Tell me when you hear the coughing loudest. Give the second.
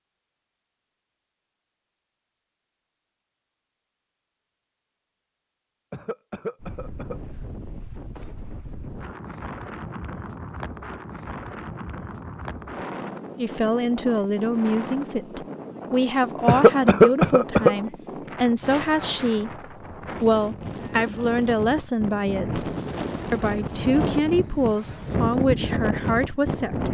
17 s.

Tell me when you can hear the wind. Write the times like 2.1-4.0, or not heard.
6.6-26.8.